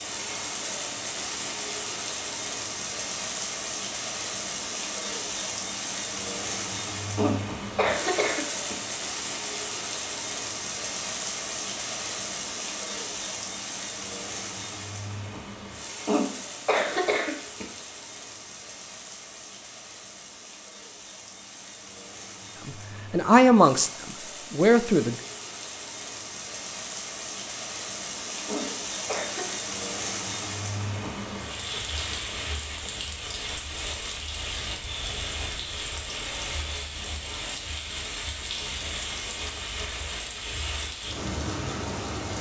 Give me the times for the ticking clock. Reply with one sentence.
The ticking clock can't be heard in this clip.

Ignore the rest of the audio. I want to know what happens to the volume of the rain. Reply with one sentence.
The volume of the rain goes down, then up.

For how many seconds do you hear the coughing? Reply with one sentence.
The coughing can be heard for 4 seconds in total.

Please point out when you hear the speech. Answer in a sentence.
You can hear the speech from 22.6 to 25.1 s.